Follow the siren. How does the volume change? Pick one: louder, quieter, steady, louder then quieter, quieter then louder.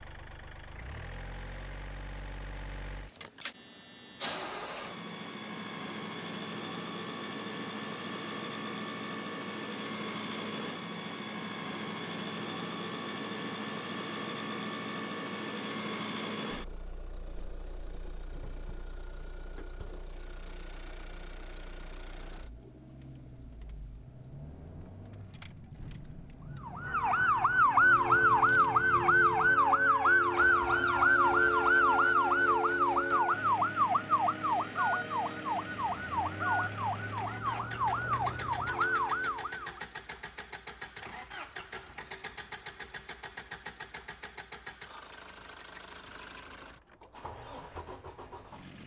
quieter.